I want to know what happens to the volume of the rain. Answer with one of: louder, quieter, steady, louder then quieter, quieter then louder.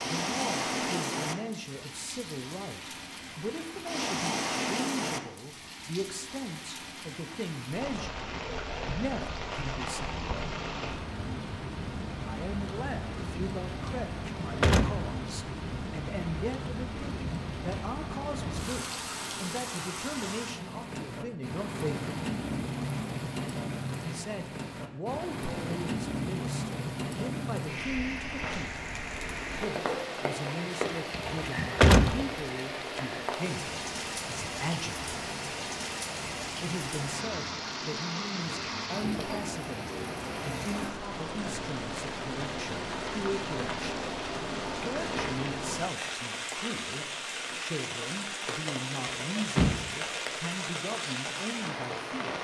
steady.